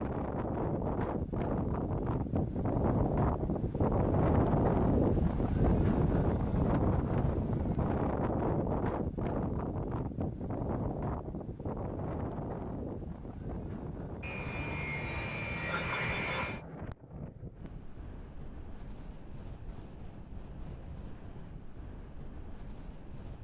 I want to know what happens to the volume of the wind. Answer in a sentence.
The loudness of the wind goes down.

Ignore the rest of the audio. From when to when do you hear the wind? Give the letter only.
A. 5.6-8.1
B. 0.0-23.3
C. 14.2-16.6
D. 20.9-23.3
B.